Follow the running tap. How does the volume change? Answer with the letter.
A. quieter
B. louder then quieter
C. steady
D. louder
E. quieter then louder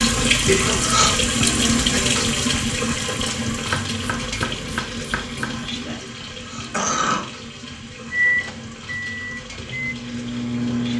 A.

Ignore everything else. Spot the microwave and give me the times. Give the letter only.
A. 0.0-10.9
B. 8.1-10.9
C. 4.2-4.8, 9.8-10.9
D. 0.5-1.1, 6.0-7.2
B.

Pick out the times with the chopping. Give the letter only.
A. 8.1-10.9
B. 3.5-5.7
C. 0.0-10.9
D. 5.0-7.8
B.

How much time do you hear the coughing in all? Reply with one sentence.
You can hear the coughing for 2 seconds altogether.